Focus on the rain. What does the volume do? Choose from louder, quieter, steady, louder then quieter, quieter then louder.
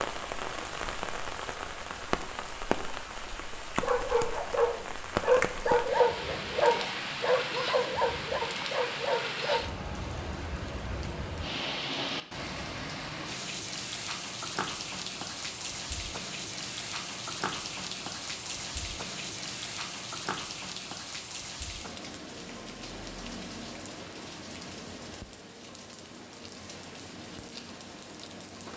quieter.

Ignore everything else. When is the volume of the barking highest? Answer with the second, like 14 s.
6 s.